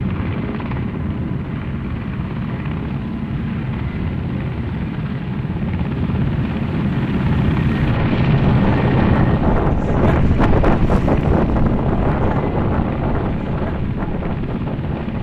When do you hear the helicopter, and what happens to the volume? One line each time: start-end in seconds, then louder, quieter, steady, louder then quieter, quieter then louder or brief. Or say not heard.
0.0-15.1 louder then quieter.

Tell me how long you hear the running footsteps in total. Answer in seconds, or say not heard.
not heard.